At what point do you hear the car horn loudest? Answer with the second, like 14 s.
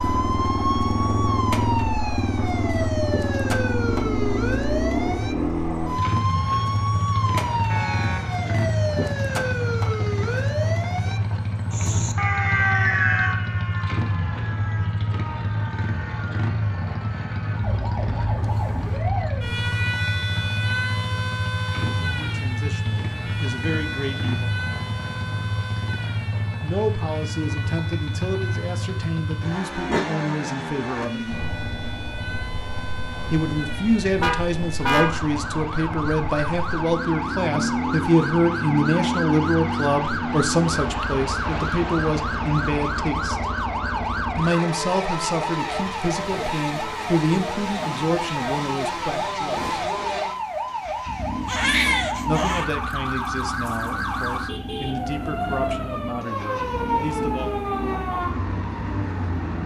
35 s.